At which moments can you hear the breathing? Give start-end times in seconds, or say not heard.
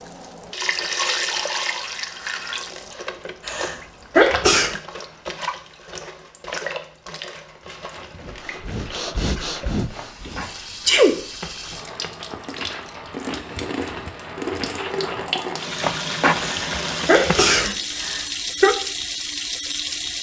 8.2-10.6.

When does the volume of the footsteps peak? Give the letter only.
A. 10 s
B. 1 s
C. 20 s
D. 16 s
D.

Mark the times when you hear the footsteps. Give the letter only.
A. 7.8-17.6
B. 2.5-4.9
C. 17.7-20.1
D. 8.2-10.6
A.